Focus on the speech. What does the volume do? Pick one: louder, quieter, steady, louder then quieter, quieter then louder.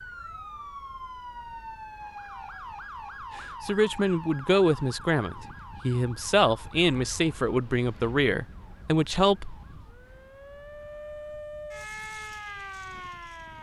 steady.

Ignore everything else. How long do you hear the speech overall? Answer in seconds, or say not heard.
6 s.